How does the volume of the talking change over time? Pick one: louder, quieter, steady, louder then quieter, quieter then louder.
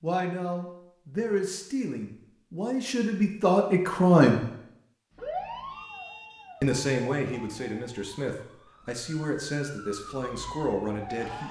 louder then quieter.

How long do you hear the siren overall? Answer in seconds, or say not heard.
6 s.